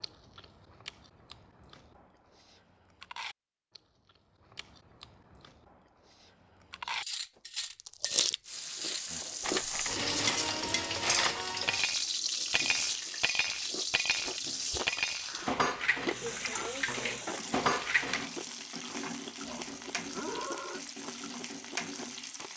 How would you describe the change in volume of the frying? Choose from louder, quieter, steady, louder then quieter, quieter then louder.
quieter.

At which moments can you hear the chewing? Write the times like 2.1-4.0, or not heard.
0.0-7.0, 7.8-9.7, 12.1-17.4, 18.4-22.5.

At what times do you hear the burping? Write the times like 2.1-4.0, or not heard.
19.4-20.9.